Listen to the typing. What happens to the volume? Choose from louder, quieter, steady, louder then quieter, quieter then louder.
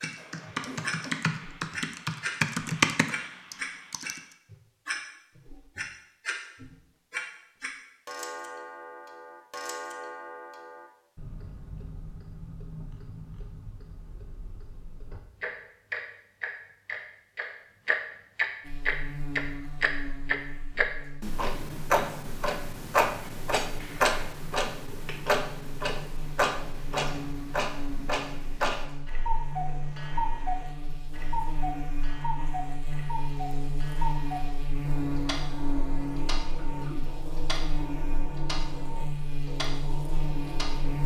louder then quieter.